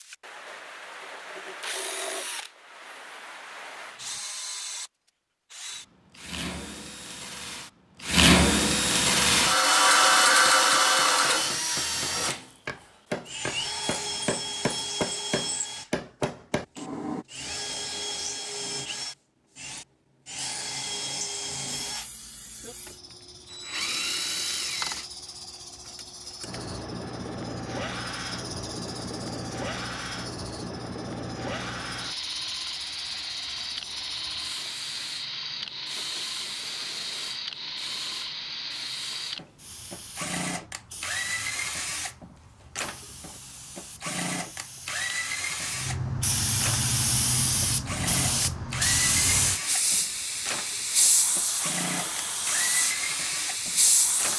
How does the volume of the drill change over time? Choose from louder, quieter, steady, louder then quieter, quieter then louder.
quieter.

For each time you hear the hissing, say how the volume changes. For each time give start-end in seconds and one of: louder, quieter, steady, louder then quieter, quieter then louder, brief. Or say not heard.
21.8-54.3 louder.